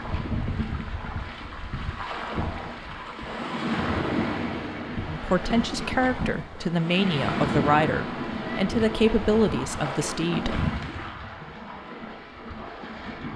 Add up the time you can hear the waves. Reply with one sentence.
You can hear the waves for 13 seconds altogether.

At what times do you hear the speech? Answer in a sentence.
The speech can be heard from 5.0 to 10.6 s.